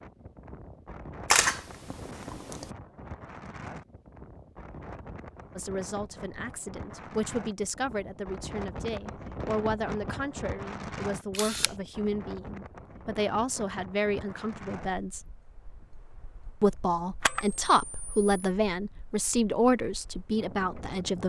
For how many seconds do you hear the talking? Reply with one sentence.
The talking can be heard for 14 seconds in total.